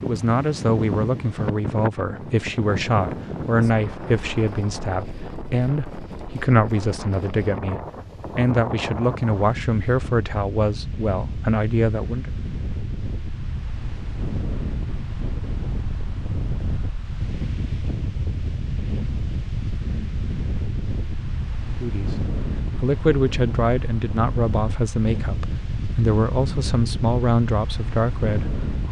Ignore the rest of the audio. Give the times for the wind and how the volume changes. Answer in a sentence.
You can hear the wind from 0.0 to 28.8 s, at a steady volume.